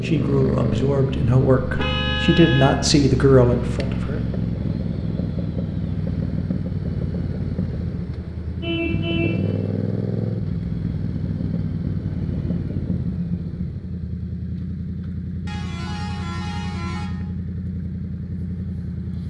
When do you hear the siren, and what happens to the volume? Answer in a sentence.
The siren can't be heard in this clip.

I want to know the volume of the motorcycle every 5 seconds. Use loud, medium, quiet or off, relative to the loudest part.
loud, loud, loud, medium.